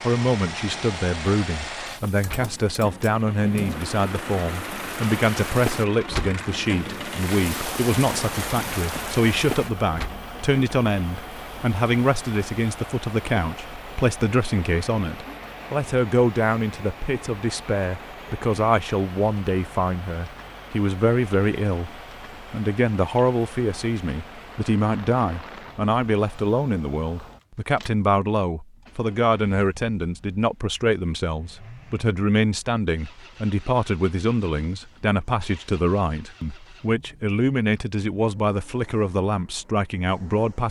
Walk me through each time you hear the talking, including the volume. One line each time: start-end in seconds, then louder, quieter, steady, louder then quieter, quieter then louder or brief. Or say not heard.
0.0-40.6 steady.